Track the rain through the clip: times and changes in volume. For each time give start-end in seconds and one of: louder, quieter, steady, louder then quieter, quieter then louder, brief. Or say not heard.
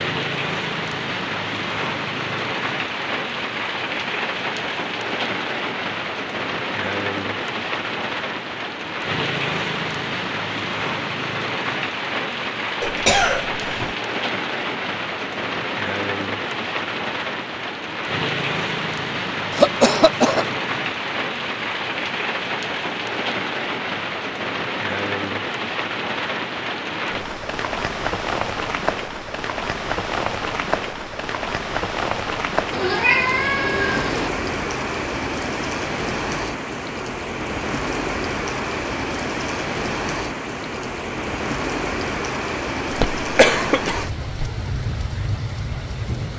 0.0-46.3 steady.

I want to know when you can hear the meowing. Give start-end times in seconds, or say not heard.
32.7-34.3.